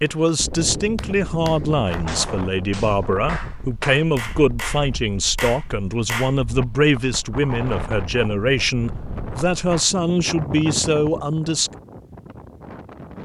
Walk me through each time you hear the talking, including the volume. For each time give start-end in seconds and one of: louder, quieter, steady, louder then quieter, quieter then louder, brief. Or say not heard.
0.0-11.7 steady.